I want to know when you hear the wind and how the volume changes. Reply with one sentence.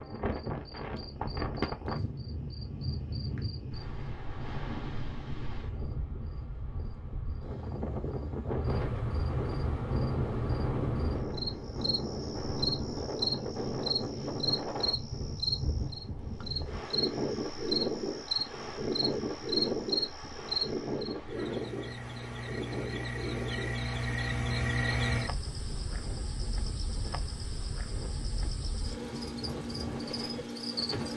The wind can be heard from 0.0 to 31.1 s, getting quieter.